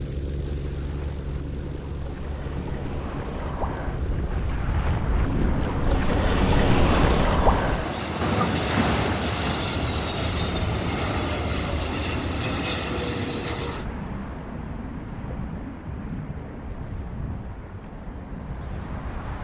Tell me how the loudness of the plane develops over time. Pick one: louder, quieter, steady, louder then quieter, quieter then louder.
louder then quieter.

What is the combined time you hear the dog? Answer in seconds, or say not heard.
not heard.